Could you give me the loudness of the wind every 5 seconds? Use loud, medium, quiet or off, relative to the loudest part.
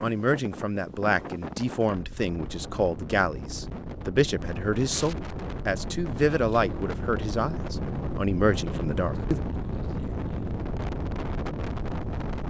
medium, loud, loud.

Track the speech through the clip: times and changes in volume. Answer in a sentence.
The speech can be heard from 0.0 to 9.4 s, at a steady volume.